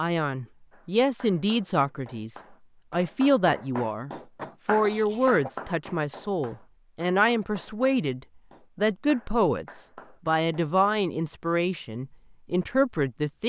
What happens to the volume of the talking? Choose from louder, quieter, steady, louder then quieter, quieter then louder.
steady.